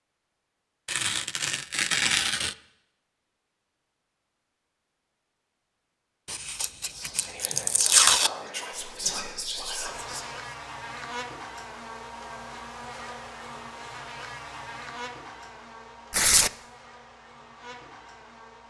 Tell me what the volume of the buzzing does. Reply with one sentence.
The volume of the buzzing goes down.